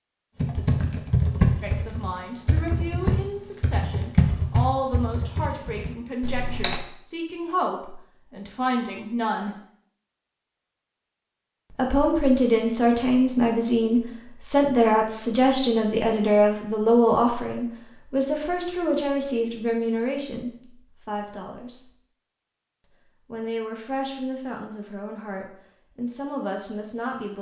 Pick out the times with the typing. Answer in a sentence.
The typing can be heard from 0.4 to 6.8 s.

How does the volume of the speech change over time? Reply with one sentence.
The loudness of the speech goes up, then down.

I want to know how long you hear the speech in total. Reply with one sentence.
You can hear the speech for 22 seconds altogether.